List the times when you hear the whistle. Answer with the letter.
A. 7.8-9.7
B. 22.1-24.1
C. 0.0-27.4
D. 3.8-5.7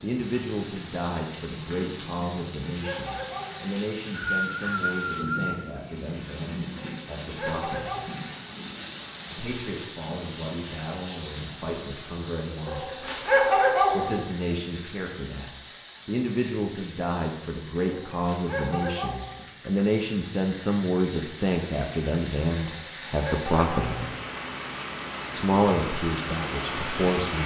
D.